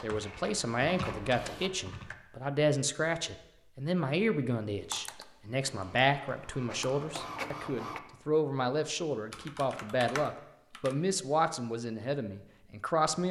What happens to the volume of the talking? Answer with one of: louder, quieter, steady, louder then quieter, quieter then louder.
steady.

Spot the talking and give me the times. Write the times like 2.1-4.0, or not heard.
0.0-13.2.